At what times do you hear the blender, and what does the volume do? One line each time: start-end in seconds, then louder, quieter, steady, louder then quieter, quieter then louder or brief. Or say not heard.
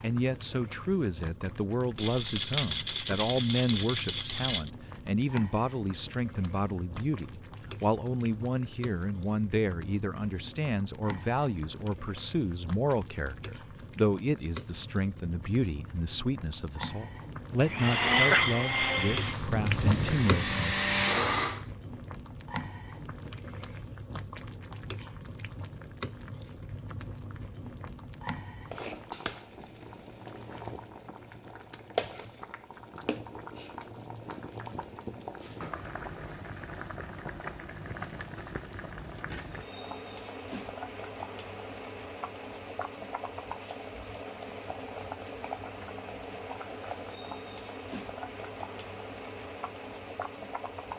17.6-21.6 quieter then louder.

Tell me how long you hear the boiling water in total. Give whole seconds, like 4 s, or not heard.
51 s.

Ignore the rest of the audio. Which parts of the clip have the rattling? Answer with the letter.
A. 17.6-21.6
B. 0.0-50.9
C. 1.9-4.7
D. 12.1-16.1
C.